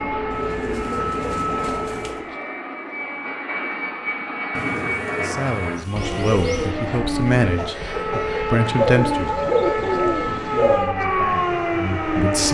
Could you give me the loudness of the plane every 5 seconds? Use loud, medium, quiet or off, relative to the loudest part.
loud, loud, medium.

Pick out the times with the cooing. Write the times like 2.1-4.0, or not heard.
0.3-2.2, 4.5-6.7, 8.8-10.9.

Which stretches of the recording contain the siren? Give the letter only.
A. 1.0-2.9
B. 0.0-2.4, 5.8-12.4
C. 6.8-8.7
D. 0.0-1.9
B.